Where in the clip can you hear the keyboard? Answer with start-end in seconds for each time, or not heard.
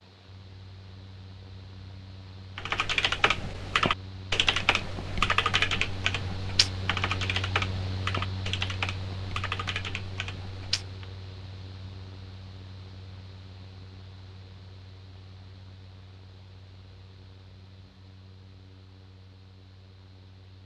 2.5-11.1.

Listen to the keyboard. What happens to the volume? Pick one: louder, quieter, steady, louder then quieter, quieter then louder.
quieter.